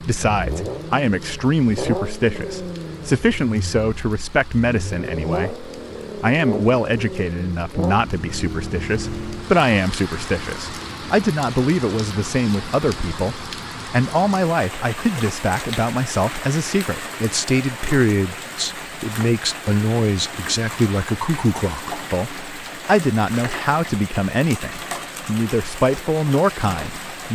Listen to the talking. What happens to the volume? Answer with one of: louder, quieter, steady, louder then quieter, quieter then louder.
steady.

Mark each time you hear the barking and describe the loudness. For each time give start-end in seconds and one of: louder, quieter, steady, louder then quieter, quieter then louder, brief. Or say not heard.
not heard.